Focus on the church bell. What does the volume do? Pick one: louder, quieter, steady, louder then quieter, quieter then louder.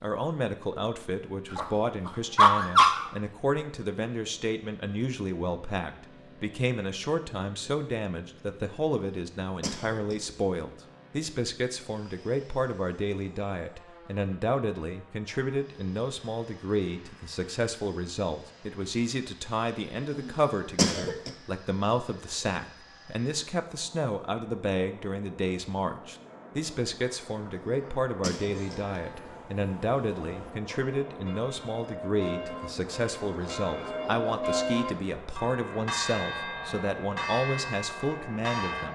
louder.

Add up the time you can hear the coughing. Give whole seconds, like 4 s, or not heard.
4 s.